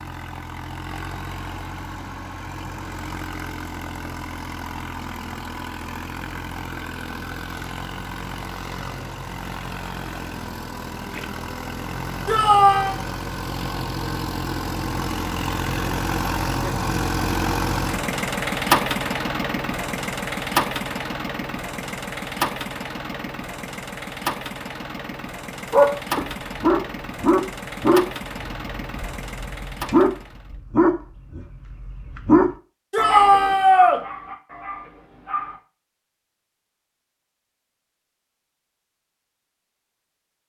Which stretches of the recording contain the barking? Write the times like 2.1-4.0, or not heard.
25.7-35.5.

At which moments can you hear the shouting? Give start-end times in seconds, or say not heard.
12.2-13.0, 32.9-34.0.